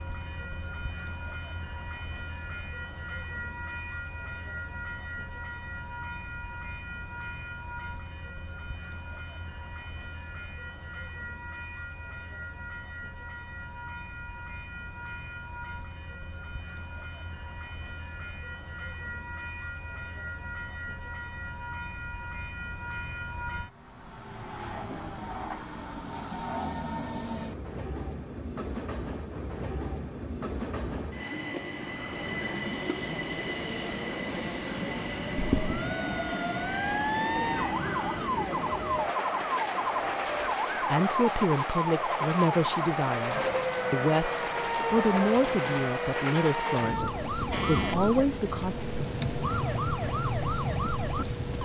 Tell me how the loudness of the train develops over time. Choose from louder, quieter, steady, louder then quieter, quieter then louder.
louder.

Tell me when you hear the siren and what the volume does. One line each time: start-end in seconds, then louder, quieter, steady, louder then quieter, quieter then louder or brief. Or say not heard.
35.4-51.5 steady.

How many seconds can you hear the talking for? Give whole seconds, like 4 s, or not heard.
8 s.